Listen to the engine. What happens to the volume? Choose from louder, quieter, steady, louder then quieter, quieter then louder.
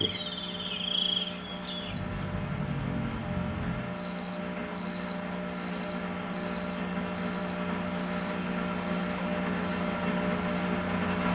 louder.